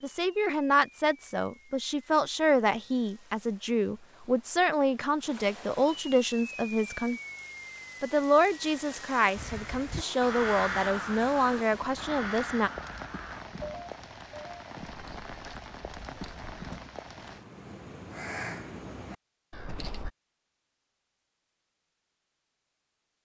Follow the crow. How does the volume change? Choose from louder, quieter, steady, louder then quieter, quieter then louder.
quieter then louder.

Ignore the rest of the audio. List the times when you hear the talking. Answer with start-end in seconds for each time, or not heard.
0.0-7.2, 8.0-12.7.